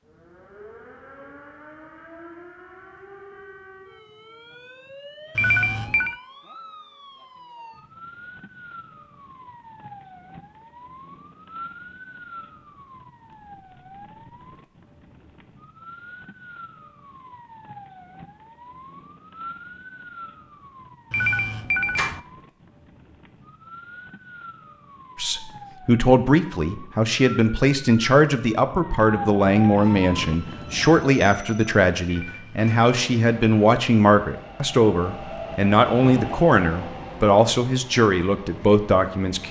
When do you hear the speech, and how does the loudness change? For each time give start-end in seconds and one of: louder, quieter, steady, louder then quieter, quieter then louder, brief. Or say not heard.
25.1-39.4 steady.